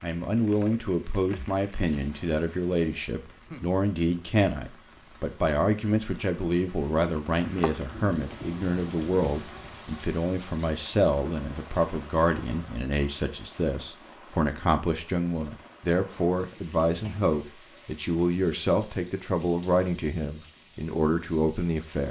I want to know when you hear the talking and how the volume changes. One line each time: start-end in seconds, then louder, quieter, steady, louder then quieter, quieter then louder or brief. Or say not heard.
0.0-22.0 steady.